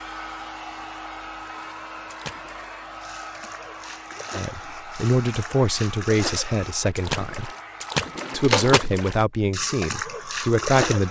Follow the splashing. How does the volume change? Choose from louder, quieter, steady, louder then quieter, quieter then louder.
louder.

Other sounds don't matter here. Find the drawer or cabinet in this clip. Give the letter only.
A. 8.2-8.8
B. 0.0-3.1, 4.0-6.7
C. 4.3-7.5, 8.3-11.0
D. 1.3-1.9
A.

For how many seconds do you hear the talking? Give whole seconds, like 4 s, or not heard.
6 s.